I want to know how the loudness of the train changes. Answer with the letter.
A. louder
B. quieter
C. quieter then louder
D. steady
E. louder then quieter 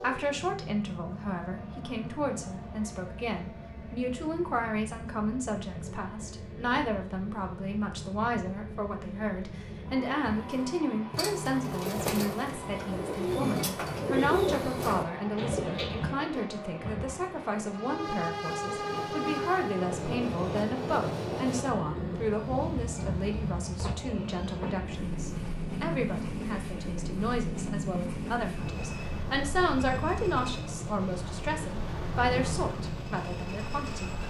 A.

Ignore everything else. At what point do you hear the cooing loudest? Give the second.
14 s.